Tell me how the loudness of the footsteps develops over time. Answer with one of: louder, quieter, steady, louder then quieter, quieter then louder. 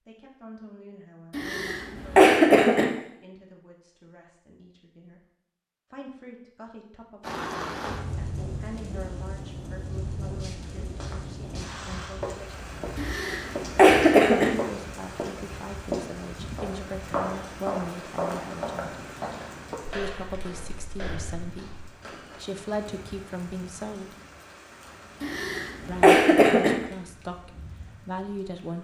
louder then quieter.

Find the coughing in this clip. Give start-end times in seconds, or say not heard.
1.3-2.9, 12.9-14.5, 25.2-26.8.